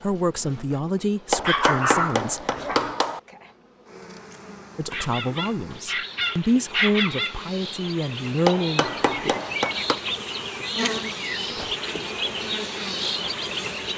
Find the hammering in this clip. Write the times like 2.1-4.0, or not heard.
1.3-3.2, 8.4-10.0.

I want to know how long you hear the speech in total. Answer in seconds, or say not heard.
7 s.